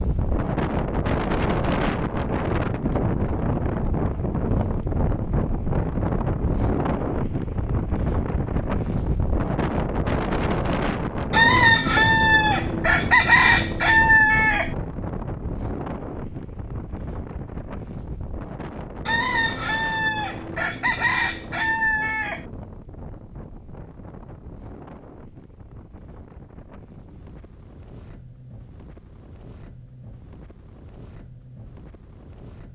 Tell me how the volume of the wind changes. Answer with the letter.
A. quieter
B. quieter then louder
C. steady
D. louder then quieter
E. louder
A.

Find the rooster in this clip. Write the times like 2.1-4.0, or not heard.
11.3-14.8, 19.1-22.4.